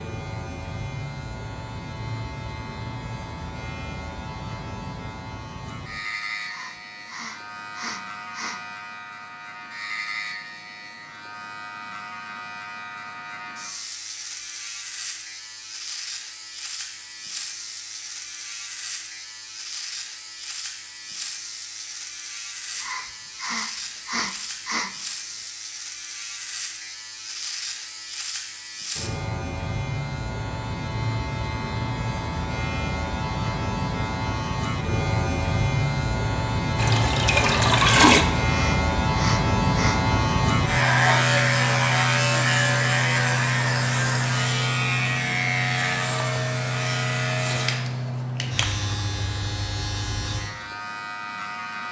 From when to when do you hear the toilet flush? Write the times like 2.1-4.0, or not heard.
36.8-38.2.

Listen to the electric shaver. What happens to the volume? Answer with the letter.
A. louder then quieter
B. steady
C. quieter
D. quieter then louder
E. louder
E.